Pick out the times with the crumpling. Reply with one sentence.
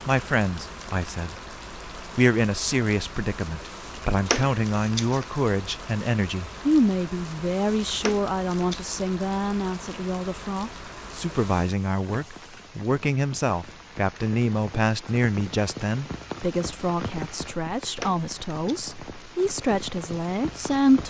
You can hear the crumpling from 4.2 to 5.2 s, from 8.0 to 8.9 s and from 17.9 to 18.9 s.